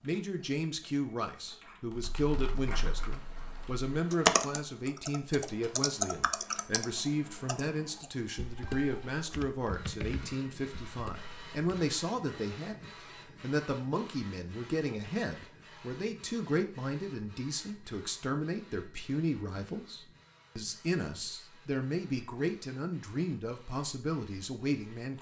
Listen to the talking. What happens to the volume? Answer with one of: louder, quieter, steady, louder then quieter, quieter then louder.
steady.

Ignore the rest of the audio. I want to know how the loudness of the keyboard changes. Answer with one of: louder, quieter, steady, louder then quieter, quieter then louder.
louder then quieter.